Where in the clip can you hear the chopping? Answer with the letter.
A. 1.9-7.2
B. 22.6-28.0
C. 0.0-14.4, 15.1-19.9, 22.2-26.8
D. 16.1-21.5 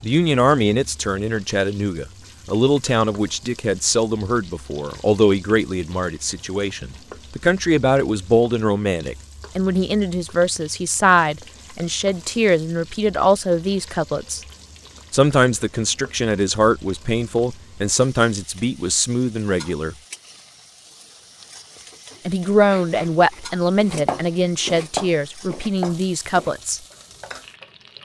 B.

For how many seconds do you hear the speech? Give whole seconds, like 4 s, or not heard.
24 s.